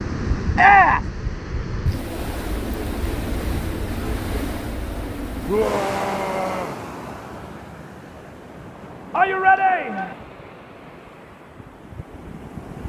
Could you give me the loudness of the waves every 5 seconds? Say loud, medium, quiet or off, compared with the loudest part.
loud, loud, medium.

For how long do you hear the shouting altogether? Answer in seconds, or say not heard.
3 s.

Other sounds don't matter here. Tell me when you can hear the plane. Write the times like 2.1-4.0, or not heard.
not heard.